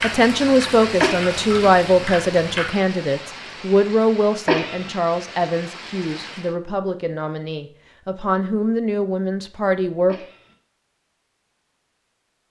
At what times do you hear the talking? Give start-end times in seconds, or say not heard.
0.0-10.2.